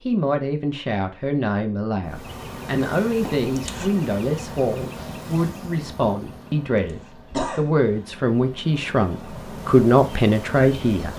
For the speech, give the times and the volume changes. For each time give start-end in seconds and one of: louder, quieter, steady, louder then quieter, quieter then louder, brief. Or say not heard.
0.0-11.1 louder.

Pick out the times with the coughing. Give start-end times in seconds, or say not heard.
3.2-3.9, 6.5-7.9.